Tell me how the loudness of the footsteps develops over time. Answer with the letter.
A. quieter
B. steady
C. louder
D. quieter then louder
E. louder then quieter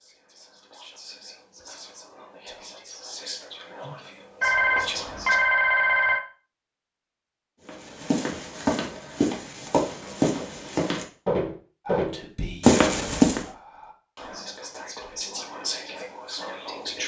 C.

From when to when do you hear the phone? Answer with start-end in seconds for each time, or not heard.
4.4-6.2.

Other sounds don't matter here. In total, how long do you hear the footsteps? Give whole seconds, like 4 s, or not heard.
6 s.